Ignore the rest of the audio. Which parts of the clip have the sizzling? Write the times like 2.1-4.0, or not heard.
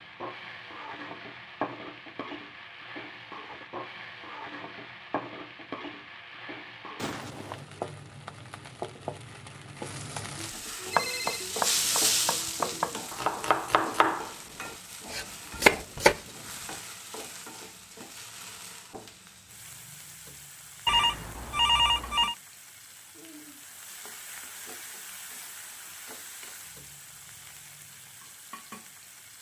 0.0-29.3.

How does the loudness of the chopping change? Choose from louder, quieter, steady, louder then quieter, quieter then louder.
louder.